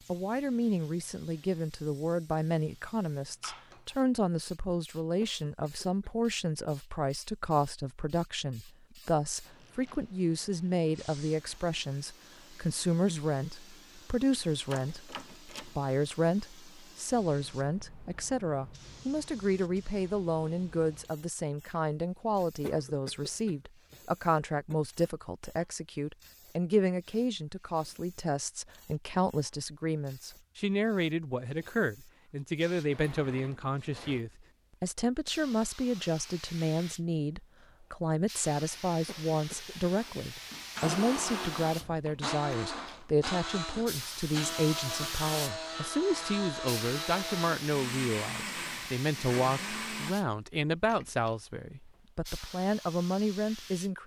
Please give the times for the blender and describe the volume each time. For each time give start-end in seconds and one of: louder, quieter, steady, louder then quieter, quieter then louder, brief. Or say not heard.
40.0-50.1 steady.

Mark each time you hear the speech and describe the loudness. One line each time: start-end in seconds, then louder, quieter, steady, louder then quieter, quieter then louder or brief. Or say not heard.
0.1-54.0 steady.